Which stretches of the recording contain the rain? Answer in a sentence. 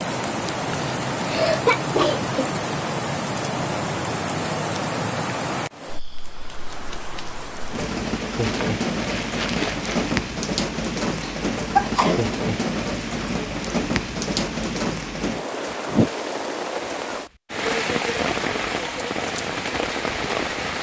You can hear the rain from 0.0 to 20.7 s.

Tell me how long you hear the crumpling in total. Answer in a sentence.
The crumpling can be heard for 2 seconds in total.